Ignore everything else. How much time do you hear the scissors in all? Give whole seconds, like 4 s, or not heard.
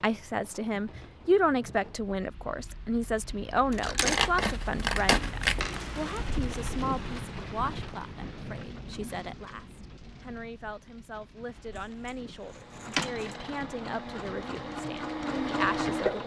3 s.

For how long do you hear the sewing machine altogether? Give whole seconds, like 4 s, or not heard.
4 s.